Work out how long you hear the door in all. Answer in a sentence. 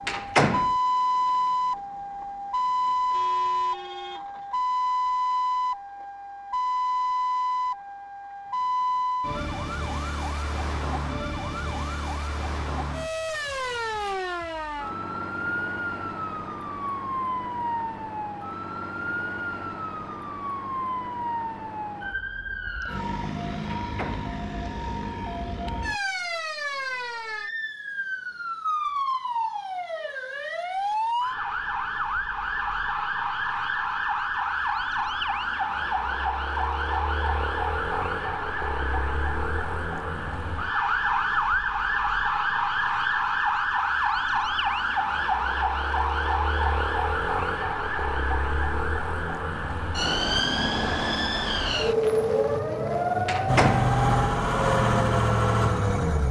You can hear the door for 2 seconds altogether.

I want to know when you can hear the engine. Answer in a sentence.
You can hear the engine from 53.5 to 56.2 s.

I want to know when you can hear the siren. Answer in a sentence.
You can hear the siren from 0.0 to 54.4 s.